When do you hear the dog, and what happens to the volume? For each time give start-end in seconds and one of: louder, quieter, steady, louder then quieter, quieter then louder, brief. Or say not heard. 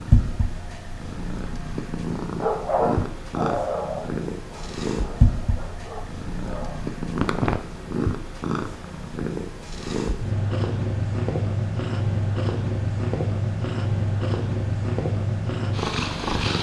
2.4-7.7 quieter then louder.